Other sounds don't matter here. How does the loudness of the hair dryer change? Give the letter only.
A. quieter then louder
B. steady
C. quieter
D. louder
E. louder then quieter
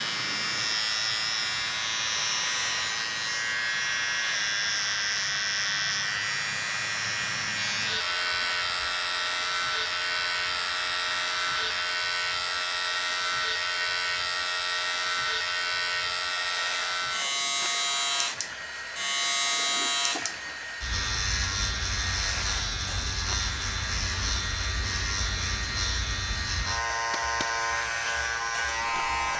B.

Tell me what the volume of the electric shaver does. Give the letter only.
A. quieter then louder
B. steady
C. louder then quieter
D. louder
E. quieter
B.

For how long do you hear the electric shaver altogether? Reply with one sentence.
The electric shaver can be heard for 29 seconds in total.